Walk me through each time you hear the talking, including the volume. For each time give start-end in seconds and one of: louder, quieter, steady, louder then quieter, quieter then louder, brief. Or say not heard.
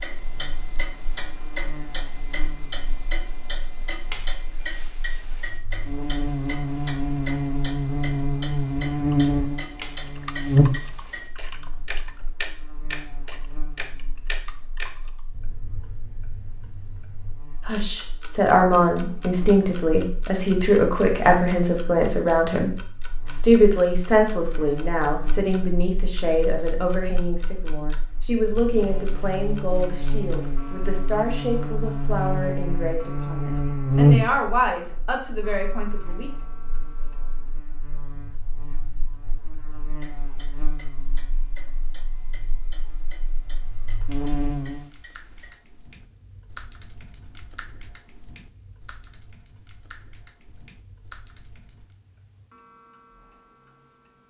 17.6-36.3 quieter.